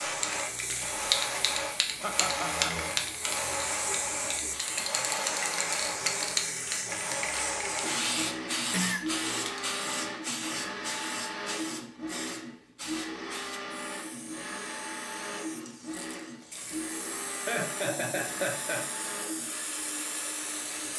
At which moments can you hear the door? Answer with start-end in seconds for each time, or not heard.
not heard.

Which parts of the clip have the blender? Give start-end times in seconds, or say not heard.
0.0-20.9.